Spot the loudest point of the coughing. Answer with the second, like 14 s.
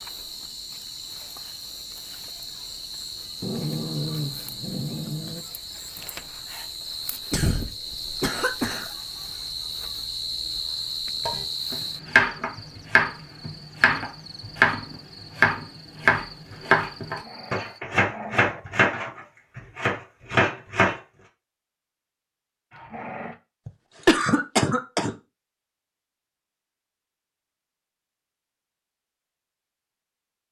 24 s.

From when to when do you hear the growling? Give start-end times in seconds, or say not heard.
3.4-5.5, 17.1-18.6, 22.7-23.4.